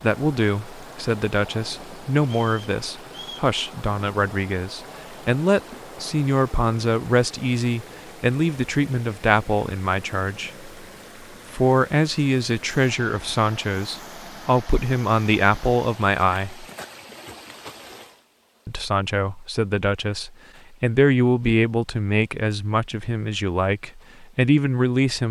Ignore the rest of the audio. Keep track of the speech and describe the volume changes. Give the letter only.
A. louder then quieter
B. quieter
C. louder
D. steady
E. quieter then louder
D.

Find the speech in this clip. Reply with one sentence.
The speech can be heard from 0.0 to 10.7 s, from 11.5 to 16.6 s and from 18.6 to 25.2 s.